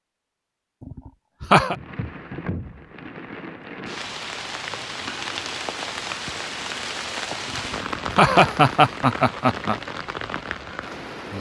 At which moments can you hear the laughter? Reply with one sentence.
The laughter can be heard from 0.8 to 1.8 s and from 7.5 to 9.8 s.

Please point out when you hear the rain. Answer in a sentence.
The rain can be heard from 1.6 to 11.3 s.